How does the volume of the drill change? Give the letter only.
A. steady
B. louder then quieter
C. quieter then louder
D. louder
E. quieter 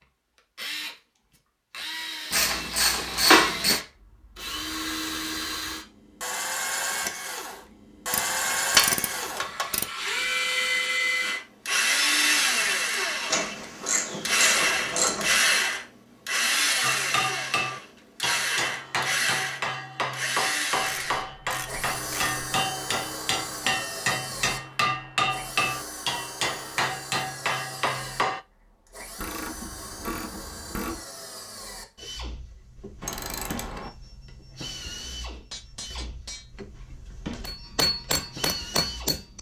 B.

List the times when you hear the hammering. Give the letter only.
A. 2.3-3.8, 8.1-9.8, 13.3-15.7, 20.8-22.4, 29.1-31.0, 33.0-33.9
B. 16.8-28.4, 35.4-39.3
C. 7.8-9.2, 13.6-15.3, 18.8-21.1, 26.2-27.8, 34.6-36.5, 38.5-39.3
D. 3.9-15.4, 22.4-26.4
B.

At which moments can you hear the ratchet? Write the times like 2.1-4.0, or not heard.
2.3-3.8, 8.1-9.8, 13.3-15.7, 20.8-22.4, 29.1-31.0, 33.0-33.9.